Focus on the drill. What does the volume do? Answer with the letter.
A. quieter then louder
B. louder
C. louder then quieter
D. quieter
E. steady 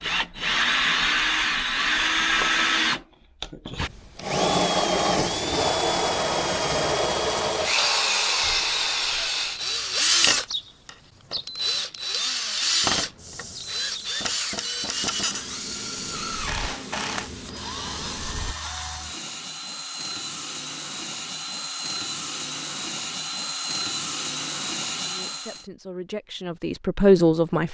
D.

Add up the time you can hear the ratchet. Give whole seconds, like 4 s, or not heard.
not heard.